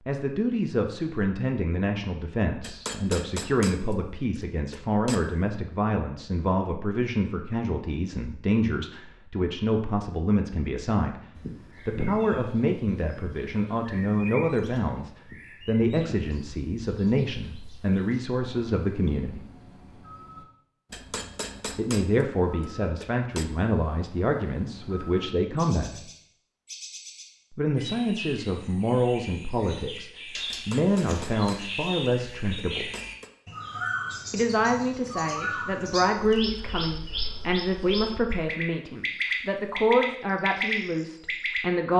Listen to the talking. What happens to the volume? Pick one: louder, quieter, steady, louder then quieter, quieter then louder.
steady.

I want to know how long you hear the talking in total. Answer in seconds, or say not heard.
36 s.